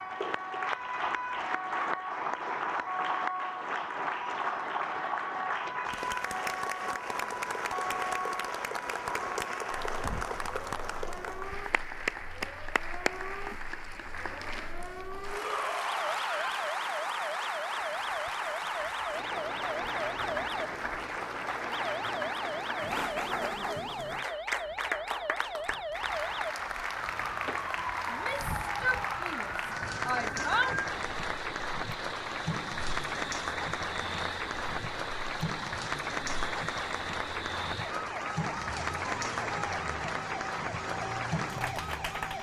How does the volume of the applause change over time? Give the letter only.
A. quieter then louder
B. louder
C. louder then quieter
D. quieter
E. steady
E.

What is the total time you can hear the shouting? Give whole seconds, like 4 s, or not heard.
4 s.